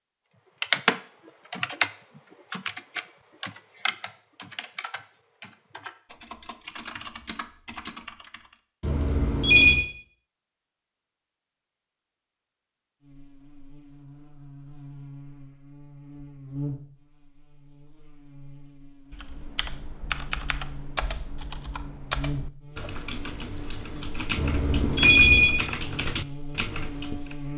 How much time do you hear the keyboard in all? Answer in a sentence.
You can hear the keyboard for 16 seconds altogether.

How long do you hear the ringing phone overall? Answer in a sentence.
The ringing phone can be heard for 2 seconds in total.